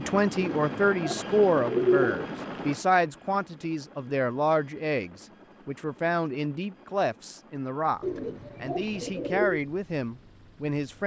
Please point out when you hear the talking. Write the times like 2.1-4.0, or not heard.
0.0-11.0.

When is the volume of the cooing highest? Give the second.
2 s.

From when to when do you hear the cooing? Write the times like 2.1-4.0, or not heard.
0.3-2.3, 8.0-9.6.